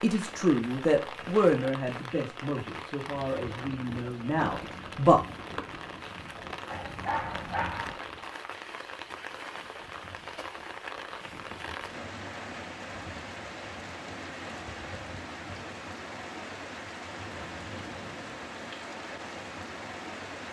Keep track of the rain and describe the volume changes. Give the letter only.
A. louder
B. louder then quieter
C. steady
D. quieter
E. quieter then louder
C.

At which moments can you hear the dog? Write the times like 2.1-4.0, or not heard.
6.7-8.0.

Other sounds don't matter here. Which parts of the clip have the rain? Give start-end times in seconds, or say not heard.
0.0-20.4.